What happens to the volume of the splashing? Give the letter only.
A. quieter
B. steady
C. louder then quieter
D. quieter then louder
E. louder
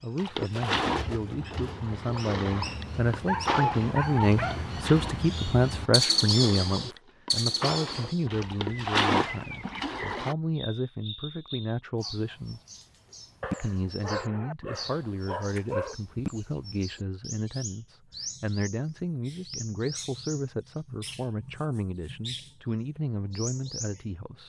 D.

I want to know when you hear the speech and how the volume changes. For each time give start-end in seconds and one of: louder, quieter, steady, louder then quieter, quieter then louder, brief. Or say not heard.
0.0-12.6 louder then quieter
13.6-24.4 steady.